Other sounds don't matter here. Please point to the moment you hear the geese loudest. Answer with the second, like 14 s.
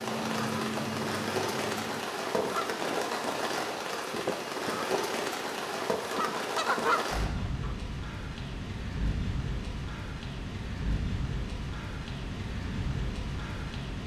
7 s.